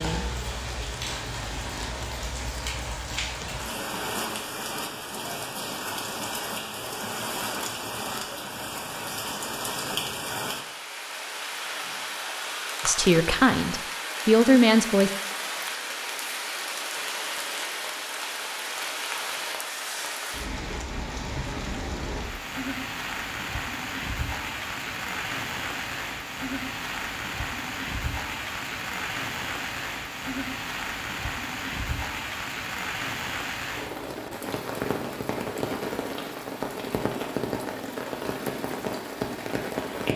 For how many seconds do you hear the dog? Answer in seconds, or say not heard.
not heard.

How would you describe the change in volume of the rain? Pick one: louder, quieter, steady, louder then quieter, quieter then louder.
steady.